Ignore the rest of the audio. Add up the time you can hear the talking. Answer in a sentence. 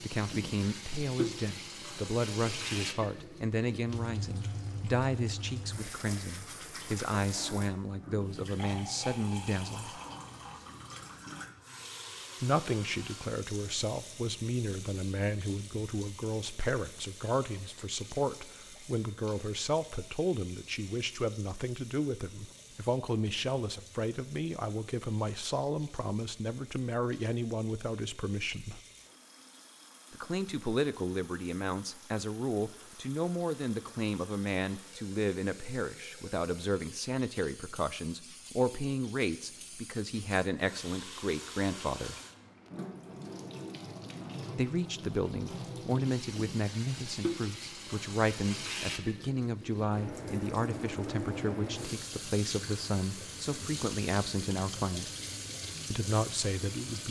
You can hear the talking for 50 seconds altogether.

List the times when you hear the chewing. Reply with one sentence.
The chewing can't be heard in this clip.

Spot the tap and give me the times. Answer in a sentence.
The tap can be heard from 0.0 to 57.0 s.